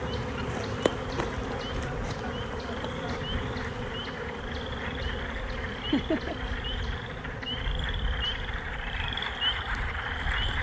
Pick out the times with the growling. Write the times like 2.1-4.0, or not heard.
not heard.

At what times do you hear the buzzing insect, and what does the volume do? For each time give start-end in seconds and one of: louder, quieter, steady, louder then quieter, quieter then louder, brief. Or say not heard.
0.0-10.5 quieter.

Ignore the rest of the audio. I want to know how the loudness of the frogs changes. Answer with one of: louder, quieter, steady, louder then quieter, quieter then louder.
louder.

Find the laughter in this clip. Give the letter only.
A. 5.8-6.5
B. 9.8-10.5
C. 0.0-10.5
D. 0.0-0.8
A.